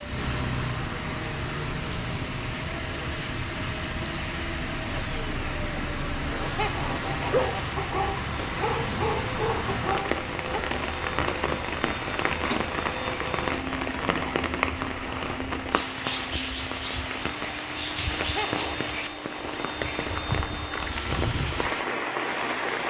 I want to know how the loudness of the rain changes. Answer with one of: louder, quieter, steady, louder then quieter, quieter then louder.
steady.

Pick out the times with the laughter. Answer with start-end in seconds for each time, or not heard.
6.4-7.5, 18.1-18.9.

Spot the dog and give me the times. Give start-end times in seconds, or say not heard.
7.2-10.6.